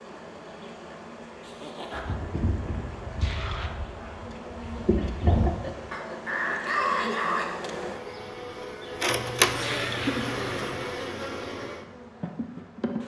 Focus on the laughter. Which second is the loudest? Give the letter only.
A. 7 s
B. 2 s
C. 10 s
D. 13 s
C.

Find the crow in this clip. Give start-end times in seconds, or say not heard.
1.9-7.5.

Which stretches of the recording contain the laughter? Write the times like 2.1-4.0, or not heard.
1.4-2.2, 5.0-7.2, 9.5-10.3.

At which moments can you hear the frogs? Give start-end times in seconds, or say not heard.
not heard.